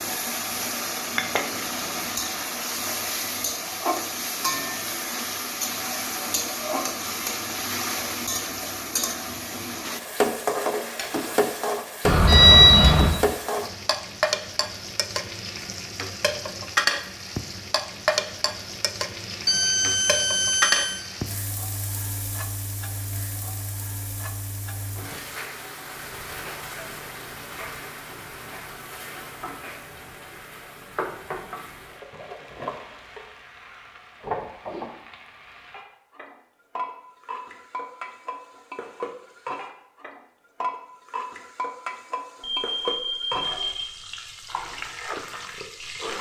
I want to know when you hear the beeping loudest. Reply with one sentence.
The volume of the beeping peaks at 13 seconds.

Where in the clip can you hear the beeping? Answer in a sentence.
The beeping can be heard from 12.1 to 13.2 s, from 19.4 to 21.1 s and from 42.4 to 44.0 s.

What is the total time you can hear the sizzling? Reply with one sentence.
The sizzling can be heard for 46 seconds in total.